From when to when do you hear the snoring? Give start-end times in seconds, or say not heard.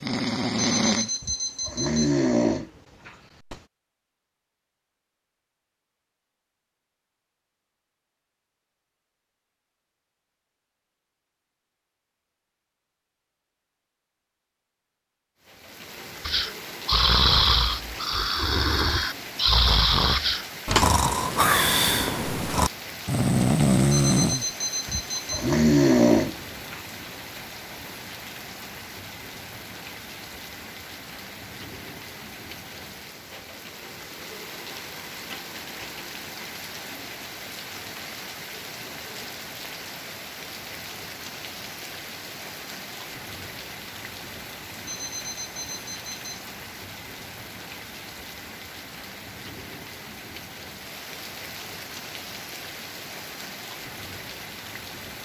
0.0-3.6, 16.2-26.8.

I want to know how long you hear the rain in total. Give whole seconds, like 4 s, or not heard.
40 s.